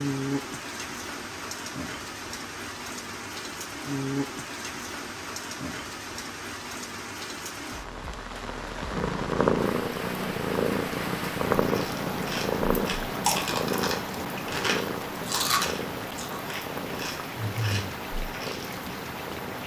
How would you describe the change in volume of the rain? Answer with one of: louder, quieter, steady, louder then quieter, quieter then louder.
steady.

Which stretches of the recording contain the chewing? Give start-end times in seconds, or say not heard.
11.6-18.9.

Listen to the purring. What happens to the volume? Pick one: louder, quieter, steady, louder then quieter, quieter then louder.
quieter.